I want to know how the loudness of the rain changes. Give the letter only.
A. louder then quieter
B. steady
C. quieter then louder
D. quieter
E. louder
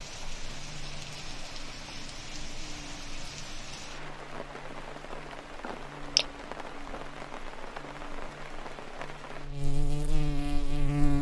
B.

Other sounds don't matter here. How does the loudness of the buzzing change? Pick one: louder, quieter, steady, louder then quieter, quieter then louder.
louder.